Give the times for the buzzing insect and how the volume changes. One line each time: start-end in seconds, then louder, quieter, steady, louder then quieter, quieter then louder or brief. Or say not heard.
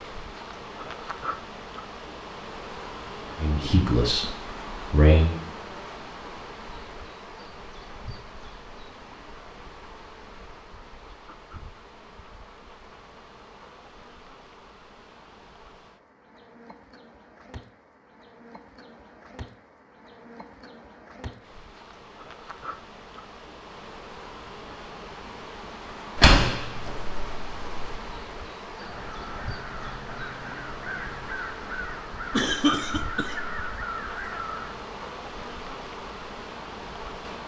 0.0-37.4 quieter then louder.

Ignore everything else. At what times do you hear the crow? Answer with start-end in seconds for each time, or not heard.
28.8-34.8.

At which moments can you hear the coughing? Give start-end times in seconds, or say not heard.
32.3-33.5.